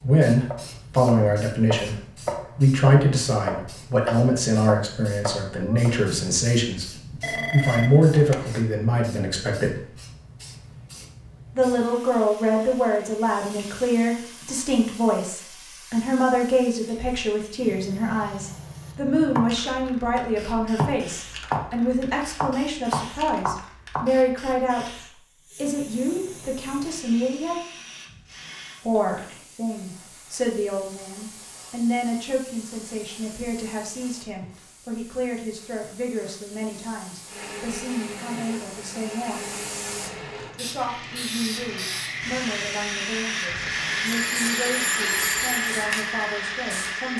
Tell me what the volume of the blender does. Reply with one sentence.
The volume of the blender goes up.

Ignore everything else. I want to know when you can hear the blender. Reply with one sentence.
The blender can be heard from 37.2 to 47.1 s.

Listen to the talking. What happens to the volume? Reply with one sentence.
The volume of the talking goes down.